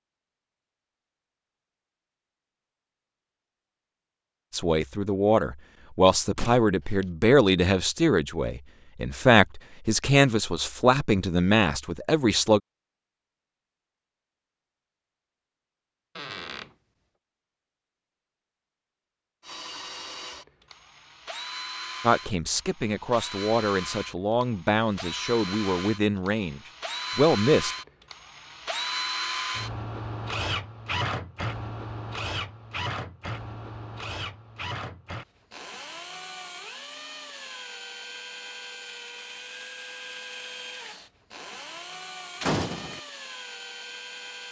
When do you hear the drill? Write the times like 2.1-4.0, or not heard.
19.4-44.4.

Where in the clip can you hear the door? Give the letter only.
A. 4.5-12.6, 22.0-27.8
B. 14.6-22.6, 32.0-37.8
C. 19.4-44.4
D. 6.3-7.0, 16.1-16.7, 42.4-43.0
D.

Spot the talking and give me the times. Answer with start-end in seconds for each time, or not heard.
4.5-12.6, 22.0-27.8.